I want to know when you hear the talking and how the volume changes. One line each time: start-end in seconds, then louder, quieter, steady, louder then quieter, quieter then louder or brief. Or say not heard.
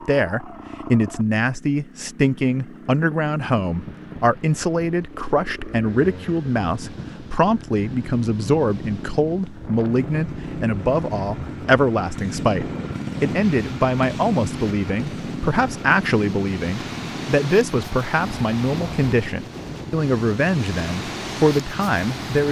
0.1-22.4 steady.